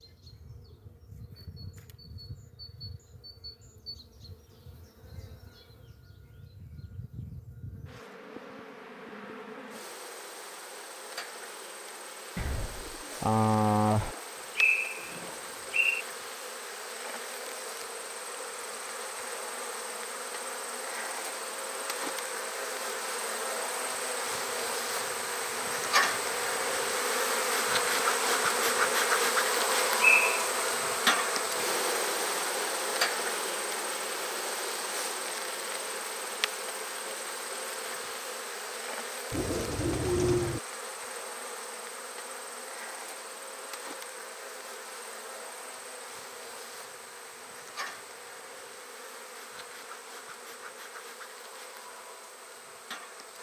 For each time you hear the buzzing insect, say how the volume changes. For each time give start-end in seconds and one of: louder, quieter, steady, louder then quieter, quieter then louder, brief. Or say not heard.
0.0-53.3 louder then quieter.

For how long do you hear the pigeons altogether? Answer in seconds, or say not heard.
3 s.